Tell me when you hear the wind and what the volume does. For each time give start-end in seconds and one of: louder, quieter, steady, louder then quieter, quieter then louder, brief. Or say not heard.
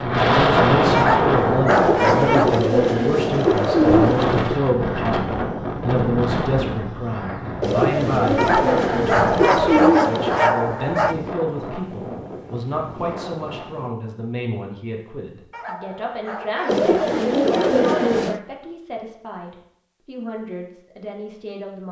0.0-13.9 quieter.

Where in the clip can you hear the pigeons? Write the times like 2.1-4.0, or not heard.
1.6-4.6, 7.6-10.4, 16.6-18.4.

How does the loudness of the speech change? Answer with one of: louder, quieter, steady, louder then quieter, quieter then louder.
quieter.